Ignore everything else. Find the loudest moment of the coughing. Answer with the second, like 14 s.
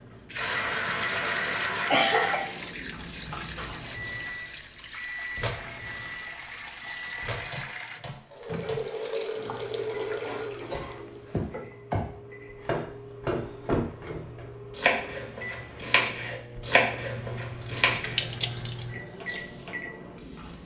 2 s.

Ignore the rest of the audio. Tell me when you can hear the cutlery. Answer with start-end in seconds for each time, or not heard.
not heard.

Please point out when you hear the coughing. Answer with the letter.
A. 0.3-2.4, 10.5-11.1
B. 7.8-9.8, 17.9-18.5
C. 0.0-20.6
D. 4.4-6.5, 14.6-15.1
A.